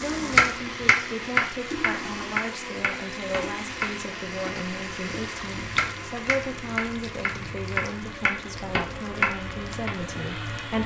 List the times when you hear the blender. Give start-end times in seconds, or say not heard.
0.0-10.8.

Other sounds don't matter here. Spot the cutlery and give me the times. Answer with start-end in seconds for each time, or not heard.
not heard.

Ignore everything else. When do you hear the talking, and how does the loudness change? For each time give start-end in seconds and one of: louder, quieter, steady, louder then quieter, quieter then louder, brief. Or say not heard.
0.0-10.8 steady.